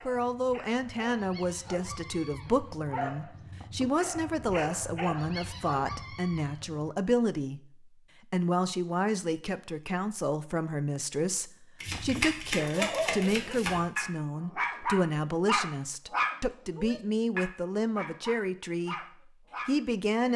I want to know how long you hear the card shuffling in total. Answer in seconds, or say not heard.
2 s.